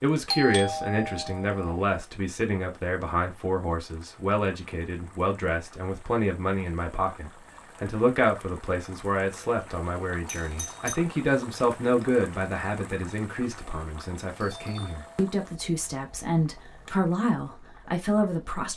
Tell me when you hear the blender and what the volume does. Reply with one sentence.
The blender can't be heard in this clip.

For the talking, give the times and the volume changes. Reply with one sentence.
The talking can be heard from 0.0 to 18.7 s, at a steady volume.